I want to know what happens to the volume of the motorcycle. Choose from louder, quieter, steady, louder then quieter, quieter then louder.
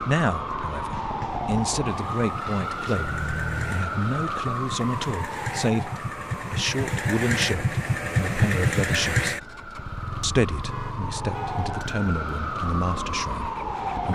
louder then quieter.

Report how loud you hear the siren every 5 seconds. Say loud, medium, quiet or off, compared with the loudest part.
loud, medium, loud.